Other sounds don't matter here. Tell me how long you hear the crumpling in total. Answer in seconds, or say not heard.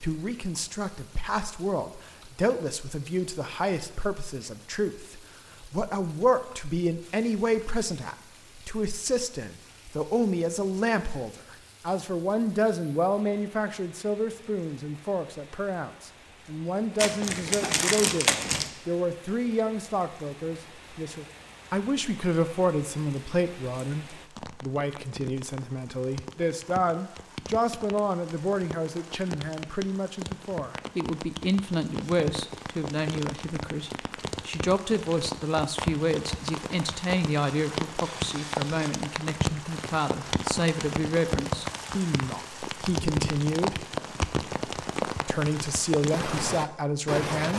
2 s.